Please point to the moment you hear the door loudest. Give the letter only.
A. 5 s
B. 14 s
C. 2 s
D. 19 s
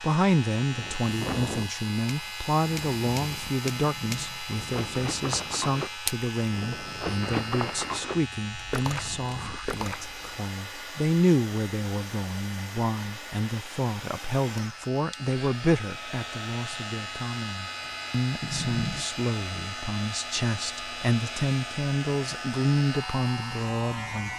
D.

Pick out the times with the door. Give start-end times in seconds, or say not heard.
3.8-4.5, 18.4-19.1.